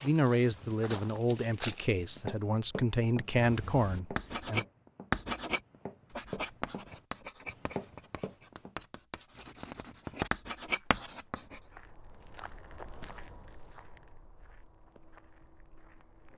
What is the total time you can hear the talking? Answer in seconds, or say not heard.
5 s.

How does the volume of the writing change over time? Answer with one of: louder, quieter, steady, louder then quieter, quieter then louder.
quieter then louder.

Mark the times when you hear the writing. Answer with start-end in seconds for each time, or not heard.
3.3-11.6.